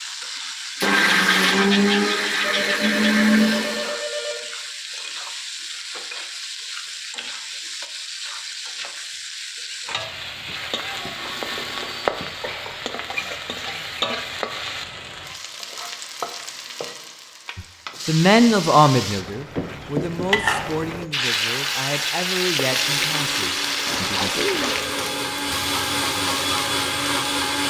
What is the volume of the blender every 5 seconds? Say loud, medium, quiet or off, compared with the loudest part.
loud, off, off, off, medium, medium.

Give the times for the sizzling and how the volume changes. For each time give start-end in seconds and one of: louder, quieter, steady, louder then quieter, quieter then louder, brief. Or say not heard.
0.0-27.6 louder.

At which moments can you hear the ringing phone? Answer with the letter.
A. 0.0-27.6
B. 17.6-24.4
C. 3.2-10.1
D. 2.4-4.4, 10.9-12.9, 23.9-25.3
D.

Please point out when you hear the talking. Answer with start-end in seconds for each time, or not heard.
17.6-24.4.